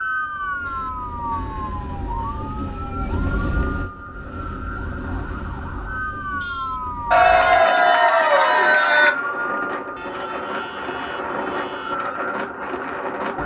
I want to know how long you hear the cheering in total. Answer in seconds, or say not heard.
2 s.